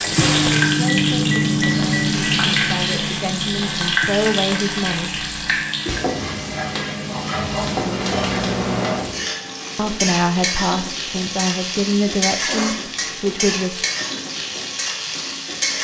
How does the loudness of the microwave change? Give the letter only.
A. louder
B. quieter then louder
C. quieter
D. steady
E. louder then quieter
B.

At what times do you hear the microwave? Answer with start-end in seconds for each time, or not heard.
0.0-9.2.